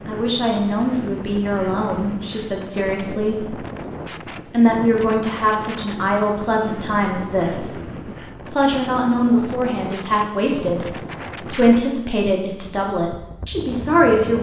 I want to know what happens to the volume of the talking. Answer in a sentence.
The volume of the talking stays about the same.